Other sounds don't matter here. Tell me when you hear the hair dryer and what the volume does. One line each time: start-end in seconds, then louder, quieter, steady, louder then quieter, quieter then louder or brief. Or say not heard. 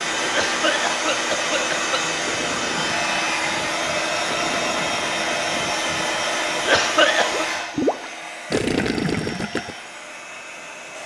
0.0-11.0 quieter.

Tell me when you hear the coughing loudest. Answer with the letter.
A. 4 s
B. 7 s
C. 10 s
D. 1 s
B.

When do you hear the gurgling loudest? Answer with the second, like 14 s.
9 s.